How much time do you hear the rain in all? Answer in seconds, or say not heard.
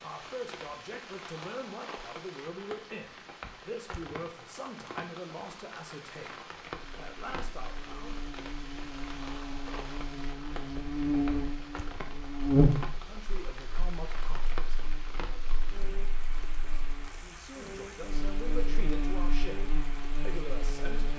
21 s.